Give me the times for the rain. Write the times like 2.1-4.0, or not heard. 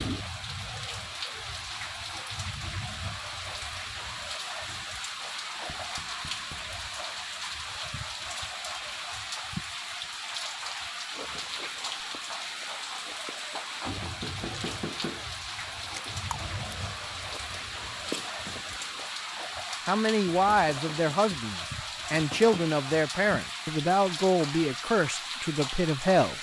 0.0-26.3.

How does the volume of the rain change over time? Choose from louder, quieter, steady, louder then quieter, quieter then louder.
steady.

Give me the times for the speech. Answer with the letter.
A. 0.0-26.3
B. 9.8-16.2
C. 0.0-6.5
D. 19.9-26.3
D.